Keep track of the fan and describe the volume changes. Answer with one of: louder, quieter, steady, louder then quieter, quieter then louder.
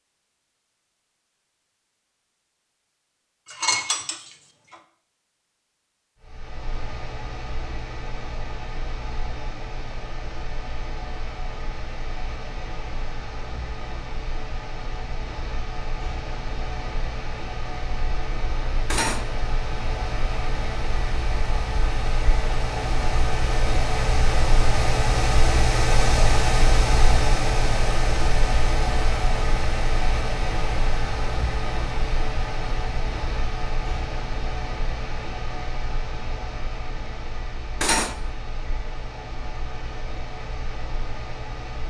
louder then quieter.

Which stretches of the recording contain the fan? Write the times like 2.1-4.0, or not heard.
6.2-41.8.